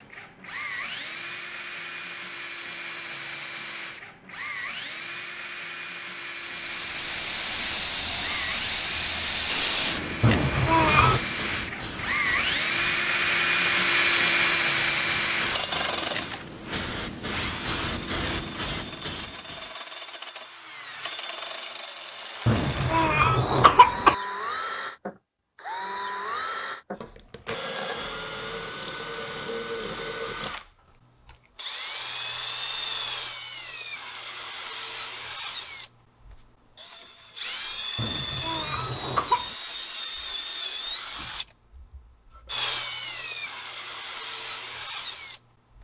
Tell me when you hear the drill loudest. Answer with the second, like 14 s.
14 s.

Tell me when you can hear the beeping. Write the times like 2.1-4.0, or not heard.
not heard.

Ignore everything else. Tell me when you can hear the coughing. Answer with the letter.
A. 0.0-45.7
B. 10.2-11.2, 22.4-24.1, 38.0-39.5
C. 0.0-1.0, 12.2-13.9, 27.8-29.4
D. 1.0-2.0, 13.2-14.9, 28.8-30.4
B.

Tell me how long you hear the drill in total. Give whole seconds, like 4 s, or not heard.
46 s.